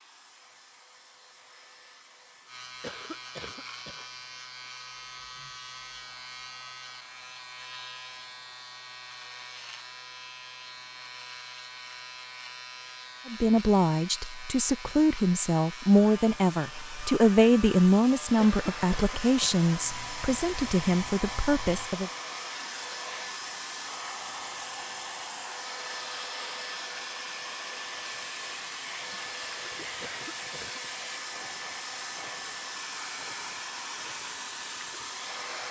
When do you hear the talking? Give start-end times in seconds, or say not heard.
13.2-22.1.